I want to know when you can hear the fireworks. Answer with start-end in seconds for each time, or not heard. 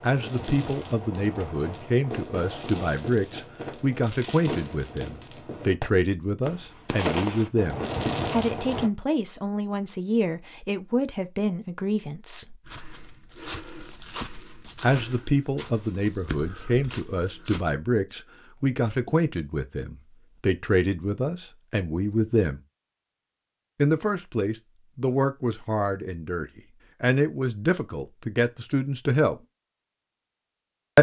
0.0-8.9.